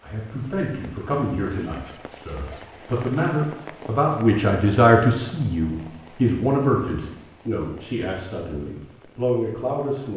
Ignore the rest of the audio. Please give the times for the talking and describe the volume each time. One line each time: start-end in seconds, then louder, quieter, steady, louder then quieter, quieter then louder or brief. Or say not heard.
0.0-10.1 louder then quieter.